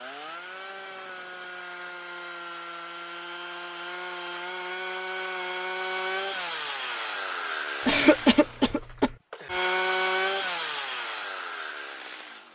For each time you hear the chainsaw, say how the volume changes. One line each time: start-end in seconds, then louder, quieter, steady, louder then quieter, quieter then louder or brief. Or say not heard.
0.0-12.4 louder.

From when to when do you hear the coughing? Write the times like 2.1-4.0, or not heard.
7.8-9.2.